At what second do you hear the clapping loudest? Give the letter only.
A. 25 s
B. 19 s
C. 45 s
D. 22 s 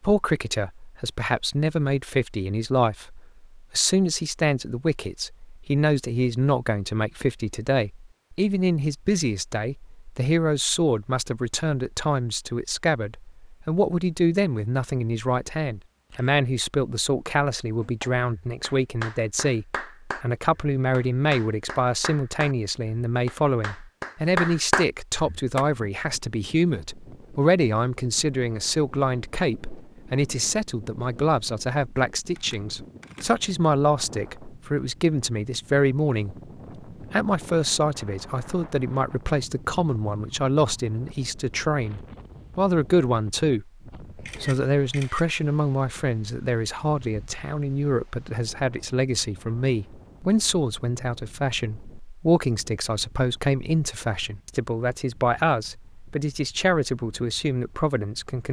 A.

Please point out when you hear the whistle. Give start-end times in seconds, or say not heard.
not heard.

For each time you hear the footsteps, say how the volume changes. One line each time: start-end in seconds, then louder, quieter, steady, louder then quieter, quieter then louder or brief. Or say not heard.
not heard.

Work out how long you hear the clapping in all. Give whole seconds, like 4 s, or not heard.
8 s.